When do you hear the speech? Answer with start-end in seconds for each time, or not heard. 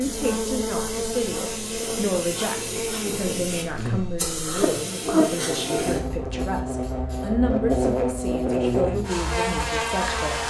0.0-10.4.